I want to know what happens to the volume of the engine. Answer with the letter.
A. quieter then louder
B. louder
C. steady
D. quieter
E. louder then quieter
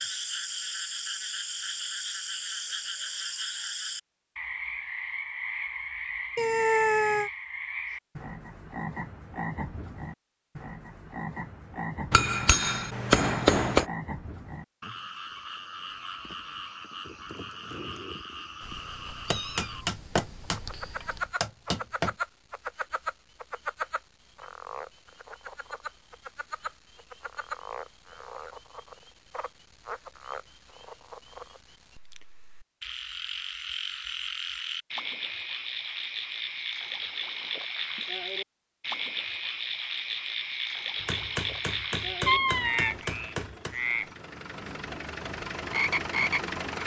B.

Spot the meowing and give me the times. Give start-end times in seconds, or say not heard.
6.3-7.3, 18.6-21.3, 42.2-43.0.